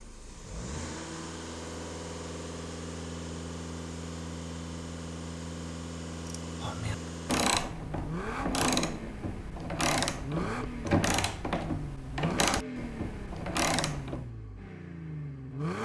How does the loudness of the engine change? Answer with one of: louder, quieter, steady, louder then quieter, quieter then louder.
steady.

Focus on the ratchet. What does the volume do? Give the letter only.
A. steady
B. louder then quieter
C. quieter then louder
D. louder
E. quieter
A.